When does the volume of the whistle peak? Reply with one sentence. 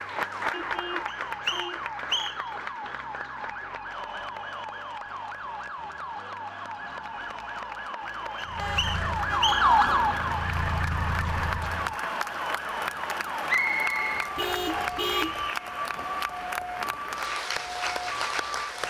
The volume of the whistle peaks at 14 seconds.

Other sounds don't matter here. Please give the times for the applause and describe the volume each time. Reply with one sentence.
The applause can be heard from 0.0 to 18.8 s, getting quieter then louder.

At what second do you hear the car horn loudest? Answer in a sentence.
The loudest moment of the car horn is at 15 seconds.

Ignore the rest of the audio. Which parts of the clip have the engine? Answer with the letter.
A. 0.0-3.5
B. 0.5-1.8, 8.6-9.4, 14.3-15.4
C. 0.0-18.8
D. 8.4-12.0
D.